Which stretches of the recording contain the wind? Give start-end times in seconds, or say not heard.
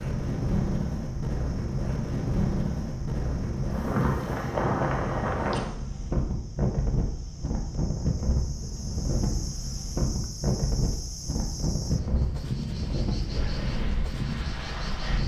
0.0-15.2.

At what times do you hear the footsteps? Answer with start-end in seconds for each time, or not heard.
not heard.